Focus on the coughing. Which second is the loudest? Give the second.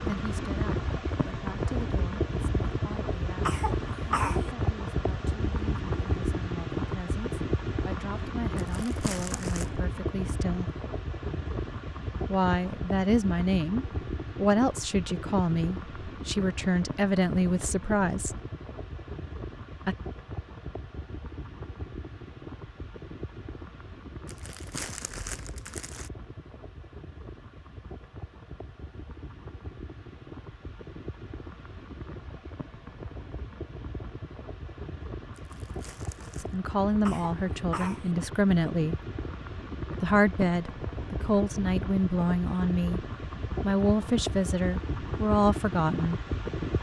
4 s.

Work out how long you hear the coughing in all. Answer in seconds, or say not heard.
2 s.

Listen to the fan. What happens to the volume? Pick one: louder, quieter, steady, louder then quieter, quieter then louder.
quieter then louder.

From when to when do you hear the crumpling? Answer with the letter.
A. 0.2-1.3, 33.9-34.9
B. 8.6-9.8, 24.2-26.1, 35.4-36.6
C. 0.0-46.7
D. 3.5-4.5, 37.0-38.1
B.